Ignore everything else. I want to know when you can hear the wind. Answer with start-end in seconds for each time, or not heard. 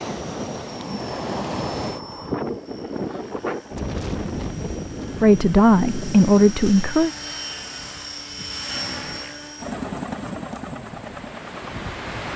0.0-12.3.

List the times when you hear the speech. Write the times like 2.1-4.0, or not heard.
5.2-7.1.